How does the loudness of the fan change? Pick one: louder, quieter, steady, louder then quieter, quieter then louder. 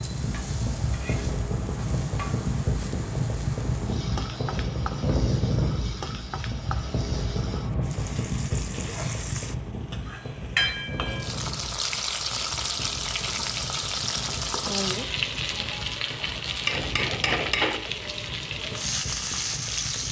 quieter.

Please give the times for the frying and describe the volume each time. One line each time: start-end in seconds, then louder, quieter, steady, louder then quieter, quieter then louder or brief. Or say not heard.
0.0-20.0 louder.